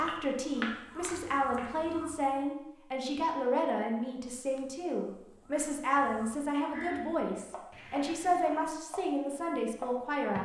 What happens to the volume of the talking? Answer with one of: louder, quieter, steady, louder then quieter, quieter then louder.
steady.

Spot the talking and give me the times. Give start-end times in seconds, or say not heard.
0.0-10.3.